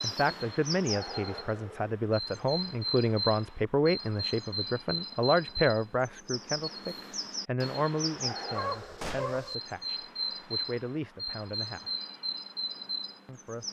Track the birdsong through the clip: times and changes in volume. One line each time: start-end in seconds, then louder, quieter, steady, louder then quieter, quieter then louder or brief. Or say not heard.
0.0-13.6 steady.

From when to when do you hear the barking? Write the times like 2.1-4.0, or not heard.
8.6-9.6.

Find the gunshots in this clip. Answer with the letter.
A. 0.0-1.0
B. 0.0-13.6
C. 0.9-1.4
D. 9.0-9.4
D.